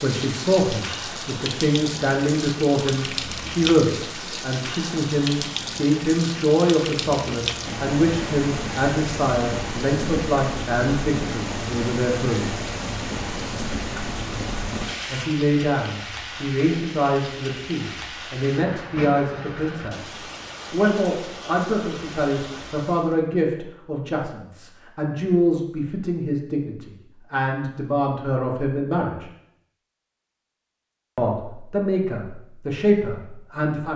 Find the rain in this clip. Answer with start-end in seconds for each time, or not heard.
0.0-23.1.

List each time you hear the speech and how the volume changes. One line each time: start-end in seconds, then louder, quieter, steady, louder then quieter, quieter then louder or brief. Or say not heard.
0.0-12.6 steady
15.1-29.3 steady
31.1-33.9 brief.